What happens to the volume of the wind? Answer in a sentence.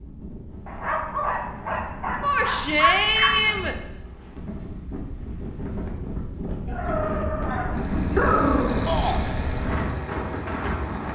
The loudness of the wind goes up.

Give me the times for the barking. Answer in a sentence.
You can hear the barking from 0.7 to 3.5 s and from 6.7 to 8.8 s.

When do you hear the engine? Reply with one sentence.
You can hear the engine from 7.7 to 11.0 s.